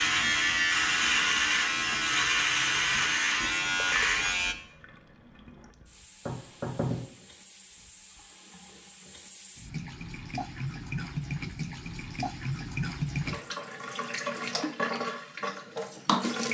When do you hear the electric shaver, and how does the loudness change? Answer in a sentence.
The electric shaver can be heard from 0.0 to 4.5 s, at a steady volume.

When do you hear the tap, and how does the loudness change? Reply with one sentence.
You can hear the tap from 0.0 to 16.4 s, getting louder.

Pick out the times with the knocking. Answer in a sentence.
The knocking can be heard from 6.2 to 7.0 s.